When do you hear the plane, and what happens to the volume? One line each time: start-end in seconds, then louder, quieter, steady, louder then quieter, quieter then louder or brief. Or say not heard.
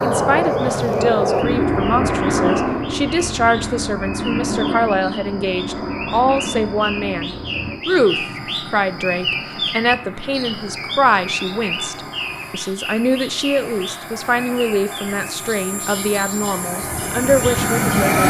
0.0-18.2 quieter then louder.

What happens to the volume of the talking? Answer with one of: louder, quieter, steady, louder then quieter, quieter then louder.
steady.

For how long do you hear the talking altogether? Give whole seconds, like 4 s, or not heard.
18 s.